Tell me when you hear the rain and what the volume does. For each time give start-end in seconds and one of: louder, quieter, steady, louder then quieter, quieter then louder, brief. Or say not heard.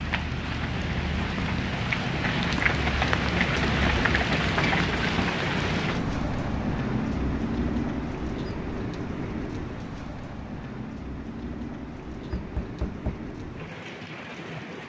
0.0-14.8 quieter.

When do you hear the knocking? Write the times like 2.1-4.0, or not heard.
12.3-13.3.